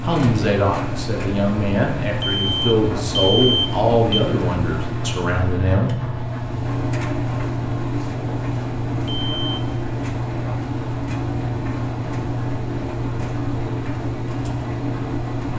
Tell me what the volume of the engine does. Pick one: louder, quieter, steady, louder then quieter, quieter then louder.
steady.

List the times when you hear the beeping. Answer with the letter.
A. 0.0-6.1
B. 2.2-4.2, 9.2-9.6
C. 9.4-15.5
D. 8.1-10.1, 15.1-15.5
B.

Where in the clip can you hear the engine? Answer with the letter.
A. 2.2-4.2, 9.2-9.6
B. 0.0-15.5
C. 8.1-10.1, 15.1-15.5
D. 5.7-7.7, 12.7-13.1
B.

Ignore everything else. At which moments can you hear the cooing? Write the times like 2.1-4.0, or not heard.
not heard.